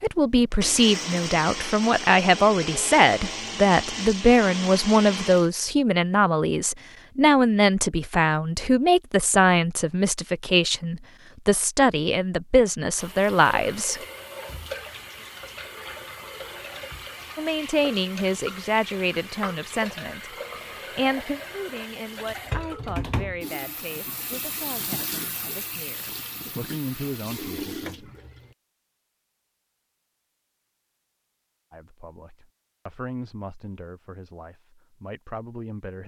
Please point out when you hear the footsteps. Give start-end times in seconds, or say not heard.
not heard.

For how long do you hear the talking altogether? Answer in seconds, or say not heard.
29 s.